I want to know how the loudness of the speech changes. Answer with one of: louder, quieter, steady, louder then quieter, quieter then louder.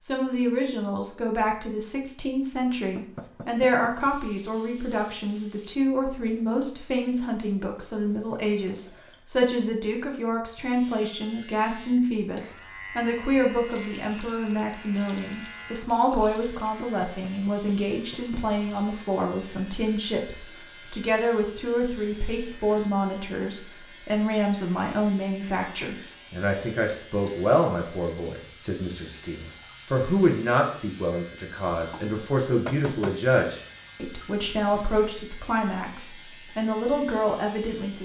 steady.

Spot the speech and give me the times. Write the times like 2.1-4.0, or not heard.
0.0-38.0.